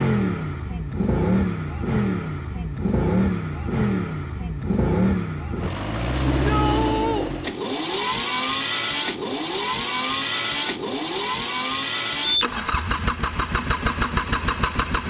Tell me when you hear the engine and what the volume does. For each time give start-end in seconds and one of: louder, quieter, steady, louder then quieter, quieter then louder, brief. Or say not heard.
0.0-15.0 steady.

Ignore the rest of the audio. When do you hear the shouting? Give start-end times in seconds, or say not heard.
6.3-7.3.